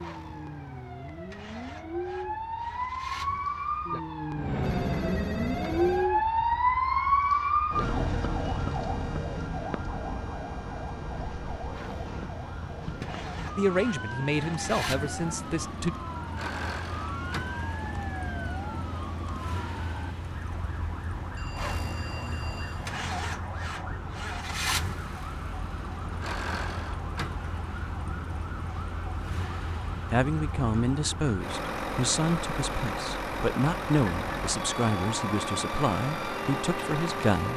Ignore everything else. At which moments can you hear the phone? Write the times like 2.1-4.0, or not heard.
4.3-6.1, 21.4-22.9.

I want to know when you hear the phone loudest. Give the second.
5 s.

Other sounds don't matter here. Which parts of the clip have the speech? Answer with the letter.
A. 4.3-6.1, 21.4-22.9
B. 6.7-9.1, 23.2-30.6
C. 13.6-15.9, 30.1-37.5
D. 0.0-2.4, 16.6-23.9
C.